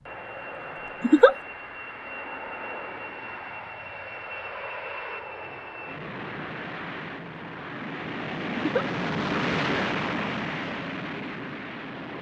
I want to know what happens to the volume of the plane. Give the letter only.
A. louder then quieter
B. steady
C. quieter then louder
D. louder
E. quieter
D.